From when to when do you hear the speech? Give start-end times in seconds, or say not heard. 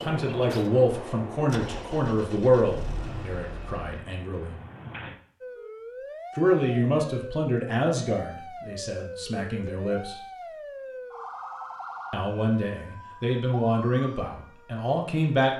0.0-4.6, 6.3-10.2, 12.1-15.5.